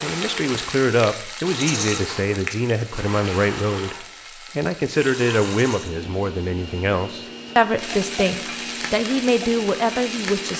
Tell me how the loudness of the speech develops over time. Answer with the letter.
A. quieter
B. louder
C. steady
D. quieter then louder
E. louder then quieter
C.